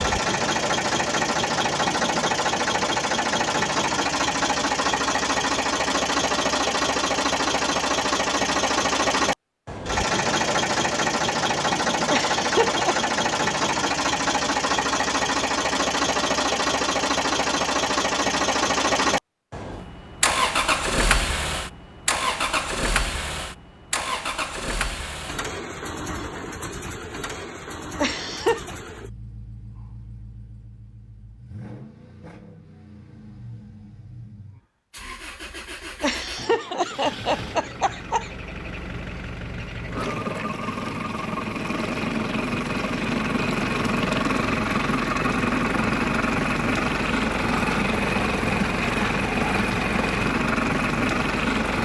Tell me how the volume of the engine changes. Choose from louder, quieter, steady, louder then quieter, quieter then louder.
quieter then louder.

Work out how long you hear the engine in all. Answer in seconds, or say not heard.
52 s.